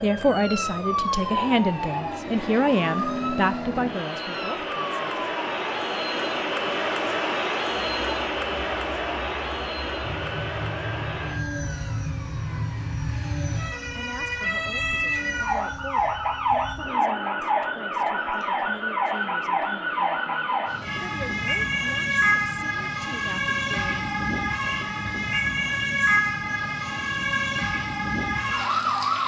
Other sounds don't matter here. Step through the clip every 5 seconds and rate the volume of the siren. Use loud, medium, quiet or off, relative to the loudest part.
medium, quiet, medium, loud, loud, loud.